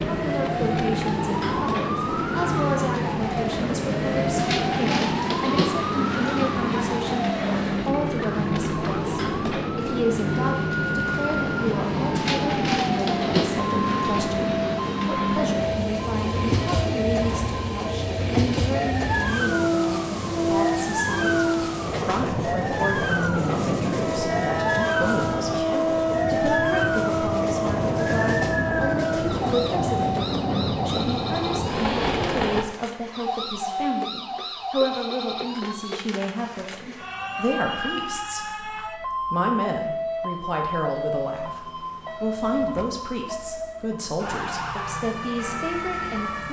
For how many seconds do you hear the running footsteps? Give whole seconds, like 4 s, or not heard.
not heard.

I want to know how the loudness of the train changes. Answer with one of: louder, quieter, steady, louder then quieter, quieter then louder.
steady.